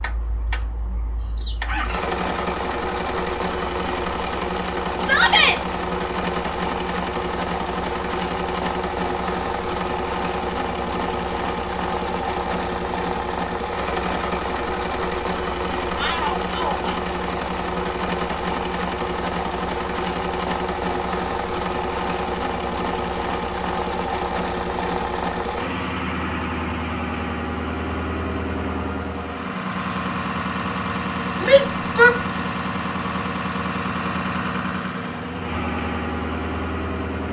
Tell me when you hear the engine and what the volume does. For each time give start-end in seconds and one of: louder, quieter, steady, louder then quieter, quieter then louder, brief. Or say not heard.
0.0-37.2 steady.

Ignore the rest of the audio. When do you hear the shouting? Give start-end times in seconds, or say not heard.
5.0-5.6, 15.9-16.8, 31.4-32.2.